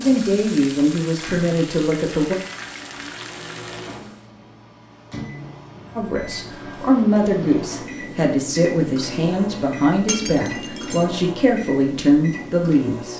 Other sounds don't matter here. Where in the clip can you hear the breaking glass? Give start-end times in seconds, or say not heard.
10.1-11.1.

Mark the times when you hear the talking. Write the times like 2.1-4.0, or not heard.
0.0-2.4, 6.0-13.1.